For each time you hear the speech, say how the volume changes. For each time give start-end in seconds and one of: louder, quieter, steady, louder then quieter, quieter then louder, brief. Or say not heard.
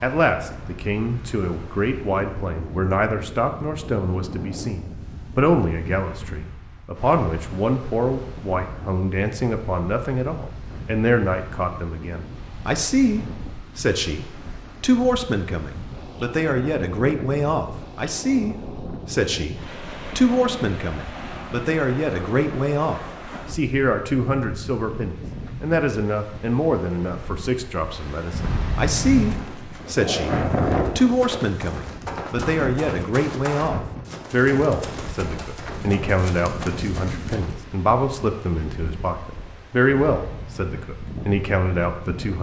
0.0-42.3 steady.